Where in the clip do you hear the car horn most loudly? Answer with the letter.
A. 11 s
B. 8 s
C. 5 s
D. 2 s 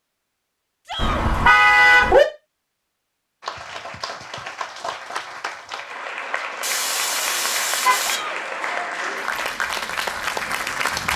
D.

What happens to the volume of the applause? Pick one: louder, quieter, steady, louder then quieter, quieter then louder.
louder.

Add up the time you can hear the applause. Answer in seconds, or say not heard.
8 s.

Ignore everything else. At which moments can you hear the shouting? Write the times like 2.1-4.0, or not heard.
0.8-1.2, 8.0-8.4.